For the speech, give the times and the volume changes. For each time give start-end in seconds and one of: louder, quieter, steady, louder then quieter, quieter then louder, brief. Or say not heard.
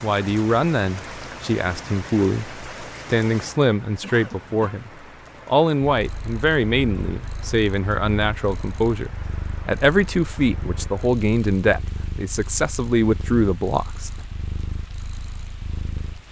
0.0-14.1 steady.